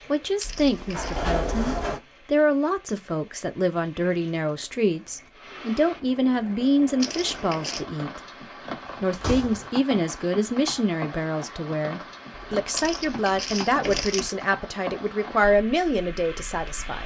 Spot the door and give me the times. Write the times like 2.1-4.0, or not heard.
0.4-2.0, 8.8-9.7, 12.3-14.2.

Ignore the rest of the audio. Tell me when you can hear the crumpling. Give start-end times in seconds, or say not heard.
0.3-1.2, 7.0-7.8, 12.7-14.3.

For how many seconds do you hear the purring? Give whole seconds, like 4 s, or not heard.
not heard.